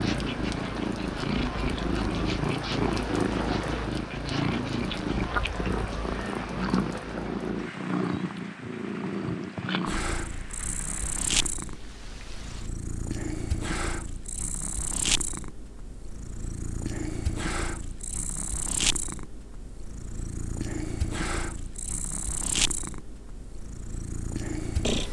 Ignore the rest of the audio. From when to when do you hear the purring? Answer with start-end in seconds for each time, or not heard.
0.0-25.0.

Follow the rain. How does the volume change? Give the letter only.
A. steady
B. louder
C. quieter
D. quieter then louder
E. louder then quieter
C.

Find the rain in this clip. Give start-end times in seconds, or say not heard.
0.0-12.7.